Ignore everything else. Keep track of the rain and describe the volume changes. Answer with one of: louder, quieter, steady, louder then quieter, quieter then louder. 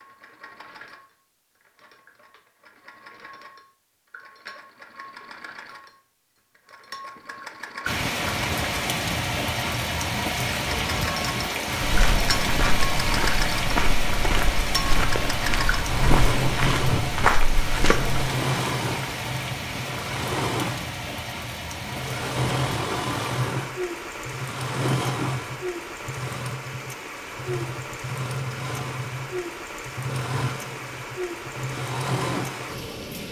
quieter.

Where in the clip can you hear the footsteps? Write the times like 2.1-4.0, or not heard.
11.8-18.2.